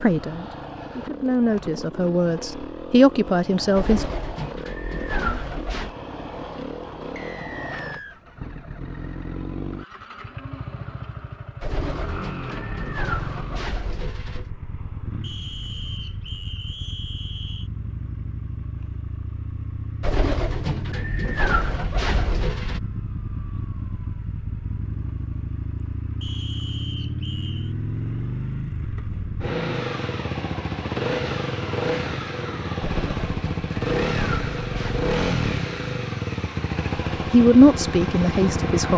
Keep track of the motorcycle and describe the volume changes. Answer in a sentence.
The loudness of the motorcycle goes up.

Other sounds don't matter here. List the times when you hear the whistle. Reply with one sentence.
The whistle can be heard from 7.2 to 8.2 s, from 15.2 to 17.7 s and from 26.2 to 27.8 s.